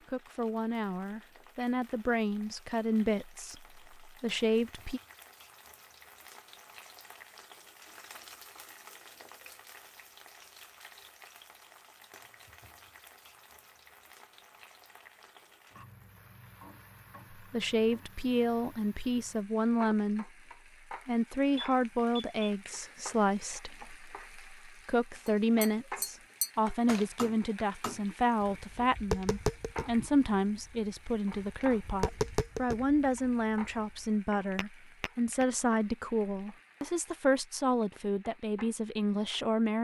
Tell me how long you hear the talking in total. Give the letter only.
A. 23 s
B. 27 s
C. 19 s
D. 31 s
B.